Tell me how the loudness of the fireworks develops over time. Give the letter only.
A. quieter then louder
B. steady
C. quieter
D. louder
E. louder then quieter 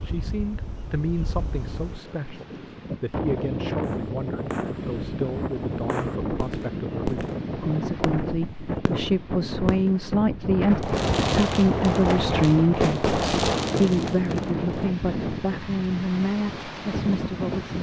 D.